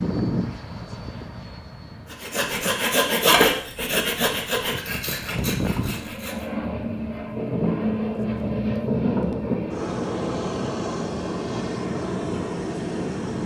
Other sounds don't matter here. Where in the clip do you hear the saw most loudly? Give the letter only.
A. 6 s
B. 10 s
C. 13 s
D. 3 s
D.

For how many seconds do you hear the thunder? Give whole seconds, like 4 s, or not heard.
3 s.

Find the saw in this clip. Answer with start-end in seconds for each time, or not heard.
2.0-6.5.